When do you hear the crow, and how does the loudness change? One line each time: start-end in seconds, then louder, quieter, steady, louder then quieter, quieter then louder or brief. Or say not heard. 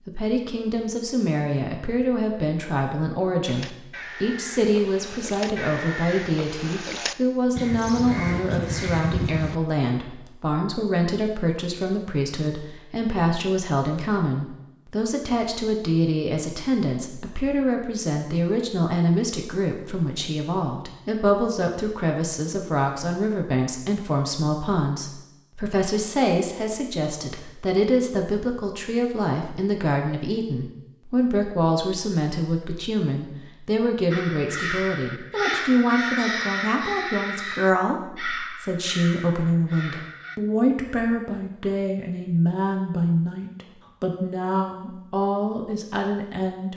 3.5-9.6 louder
34.1-40.4 quieter.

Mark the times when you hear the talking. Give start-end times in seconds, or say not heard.
0.1-46.7.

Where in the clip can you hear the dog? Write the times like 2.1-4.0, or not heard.
not heard.